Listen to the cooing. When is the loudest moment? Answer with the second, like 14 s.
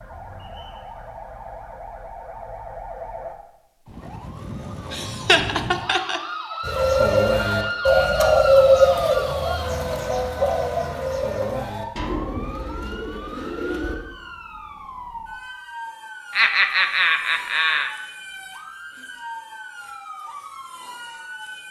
9 s.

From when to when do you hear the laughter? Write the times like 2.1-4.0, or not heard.
4.9-6.2, 16.3-17.9.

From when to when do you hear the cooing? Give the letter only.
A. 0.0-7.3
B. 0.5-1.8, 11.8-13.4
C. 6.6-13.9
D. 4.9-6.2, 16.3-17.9
C.